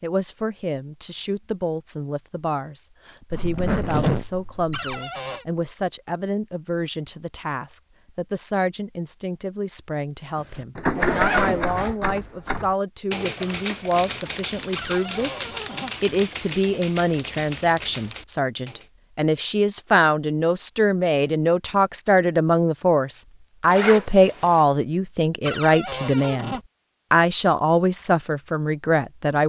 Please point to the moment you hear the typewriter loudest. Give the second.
11 s.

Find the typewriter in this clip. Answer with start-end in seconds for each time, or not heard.
10.3-18.9.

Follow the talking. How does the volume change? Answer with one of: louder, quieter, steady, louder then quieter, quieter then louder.
louder.